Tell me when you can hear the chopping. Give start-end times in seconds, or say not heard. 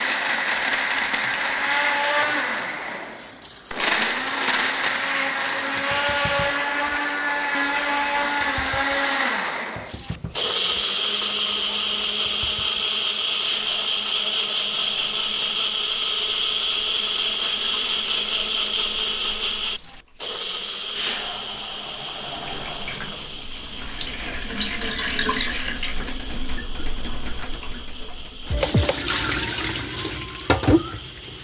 not heard.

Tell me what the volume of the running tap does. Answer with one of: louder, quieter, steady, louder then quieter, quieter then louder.
louder.